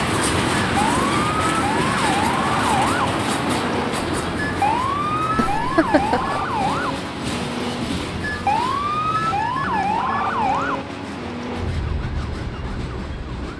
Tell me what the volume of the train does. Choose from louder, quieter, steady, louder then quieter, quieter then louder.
quieter.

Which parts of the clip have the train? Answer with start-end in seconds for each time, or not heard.
0.0-13.5.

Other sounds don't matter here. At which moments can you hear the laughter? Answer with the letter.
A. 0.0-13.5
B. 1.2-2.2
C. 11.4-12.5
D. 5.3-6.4
D.